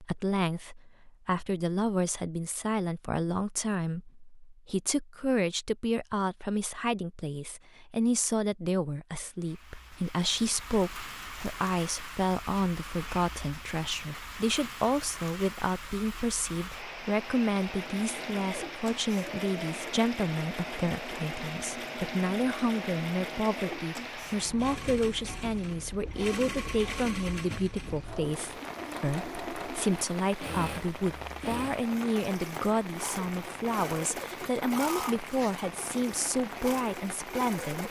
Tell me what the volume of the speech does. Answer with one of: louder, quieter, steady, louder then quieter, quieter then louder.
steady.